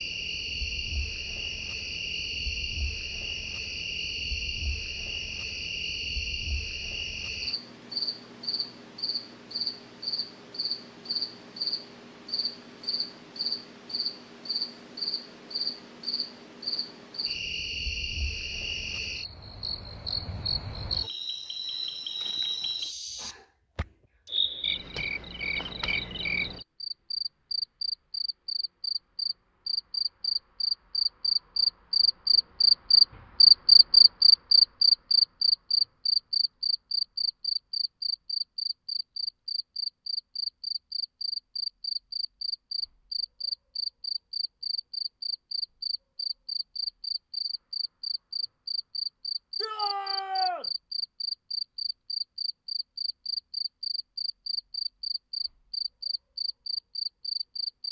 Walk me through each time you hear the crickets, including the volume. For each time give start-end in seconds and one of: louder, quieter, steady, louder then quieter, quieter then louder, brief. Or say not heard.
0.0-57.8 louder then quieter.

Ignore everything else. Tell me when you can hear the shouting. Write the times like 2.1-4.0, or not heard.
49.6-50.6.